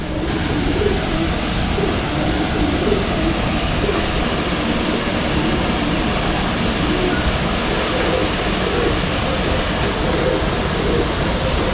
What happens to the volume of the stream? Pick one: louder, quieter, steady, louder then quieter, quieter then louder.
steady.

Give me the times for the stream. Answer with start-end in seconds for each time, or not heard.
0.0-11.6.